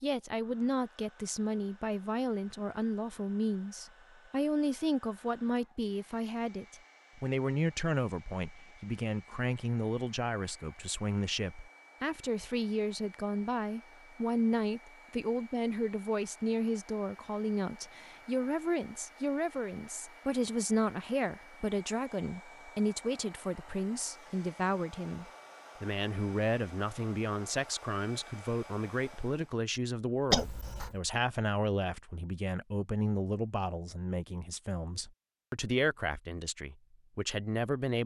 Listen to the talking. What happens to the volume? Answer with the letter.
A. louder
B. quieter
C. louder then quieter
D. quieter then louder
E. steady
E.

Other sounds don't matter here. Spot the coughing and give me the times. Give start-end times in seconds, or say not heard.
30.3-30.9.